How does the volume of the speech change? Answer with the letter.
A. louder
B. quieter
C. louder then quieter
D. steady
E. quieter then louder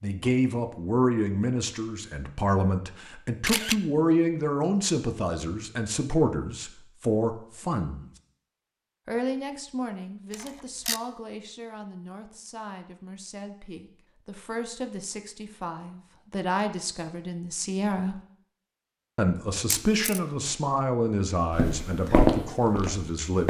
E.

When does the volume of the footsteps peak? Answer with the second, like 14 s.
22 s.